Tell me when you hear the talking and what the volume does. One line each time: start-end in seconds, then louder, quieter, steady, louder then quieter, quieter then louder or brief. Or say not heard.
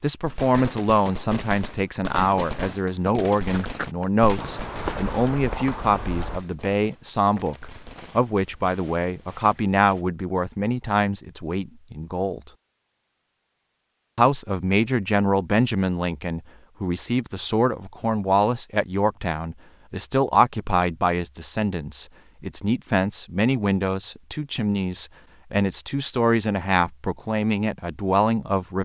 0.0-12.5 steady
14.2-28.8 steady.